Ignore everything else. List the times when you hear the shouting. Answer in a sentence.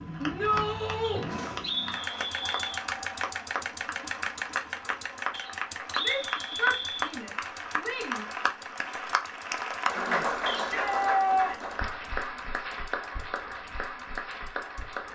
The shouting can be heard from 0.2 to 1.2 s, from 6.0 to 8.2 s and from 10.5 to 11.8 s.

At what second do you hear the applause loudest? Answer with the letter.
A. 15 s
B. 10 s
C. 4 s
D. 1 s
B.